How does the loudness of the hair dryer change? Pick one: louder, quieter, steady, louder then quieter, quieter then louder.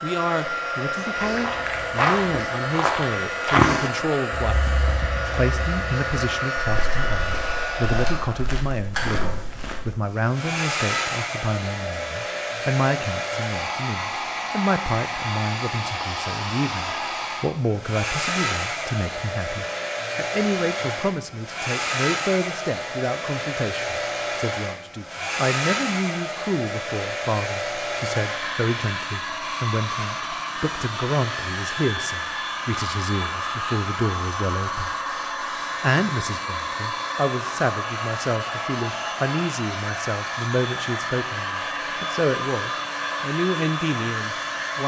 steady.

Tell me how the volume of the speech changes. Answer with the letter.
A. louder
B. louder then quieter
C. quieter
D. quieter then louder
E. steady
E.